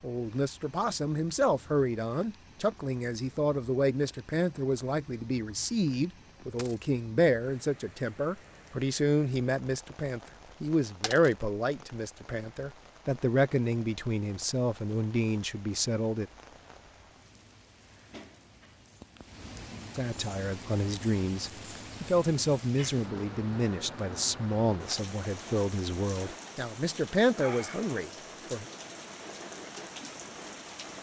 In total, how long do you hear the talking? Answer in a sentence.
The talking can be heard for 25 seconds in total.